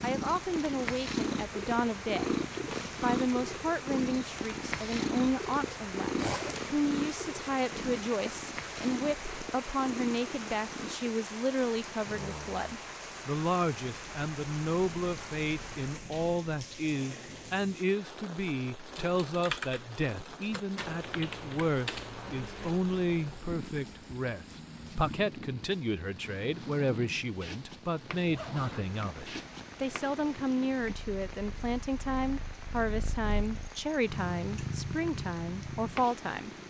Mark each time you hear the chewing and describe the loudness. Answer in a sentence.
The chewing can't be heard in this clip.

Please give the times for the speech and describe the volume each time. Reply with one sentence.
The speech can be heard briefly from 0.0 to 2.4 s; and from 3.0 to 36.5 s, at a steady volume.